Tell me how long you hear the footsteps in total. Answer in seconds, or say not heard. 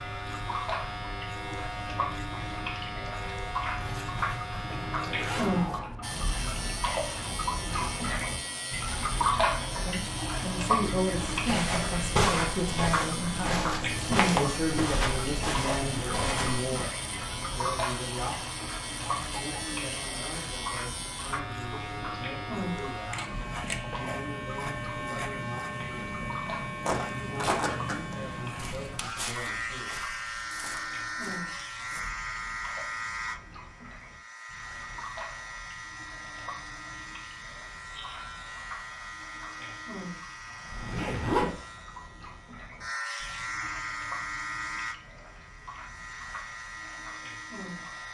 11 s.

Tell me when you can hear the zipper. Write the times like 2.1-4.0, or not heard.
3.8-5.8, 40.7-41.6.